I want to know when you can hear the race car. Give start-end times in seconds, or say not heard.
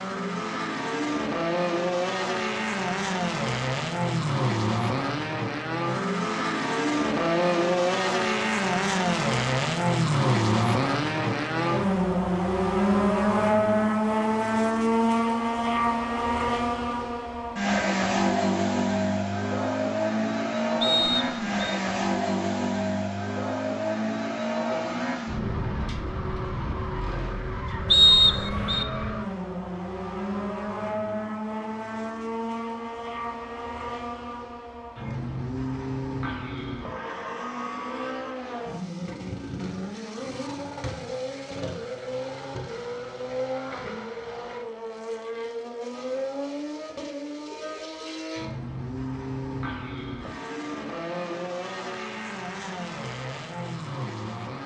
0.0-54.6.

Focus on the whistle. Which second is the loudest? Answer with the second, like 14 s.
28 s.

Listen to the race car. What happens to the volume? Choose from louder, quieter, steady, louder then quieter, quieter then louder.
quieter.